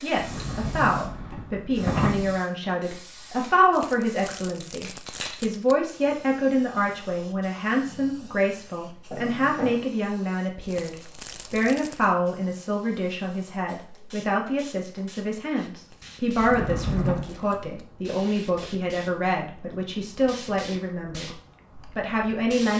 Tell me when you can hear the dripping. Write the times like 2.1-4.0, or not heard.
not heard.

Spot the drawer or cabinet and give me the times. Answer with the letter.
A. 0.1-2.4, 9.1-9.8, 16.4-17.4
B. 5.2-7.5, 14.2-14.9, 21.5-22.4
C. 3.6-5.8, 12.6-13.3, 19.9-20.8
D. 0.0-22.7
A.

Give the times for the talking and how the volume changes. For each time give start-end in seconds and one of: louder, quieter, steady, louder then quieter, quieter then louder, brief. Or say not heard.
0.0-22.7 steady.